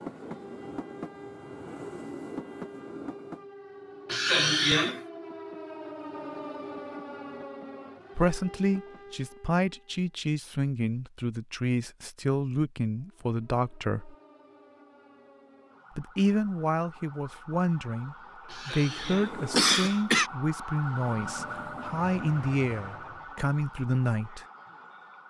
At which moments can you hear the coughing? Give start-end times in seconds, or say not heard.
4.0-5.0, 18.5-20.3.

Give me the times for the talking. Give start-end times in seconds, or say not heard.
8.2-14.2, 15.9-24.4.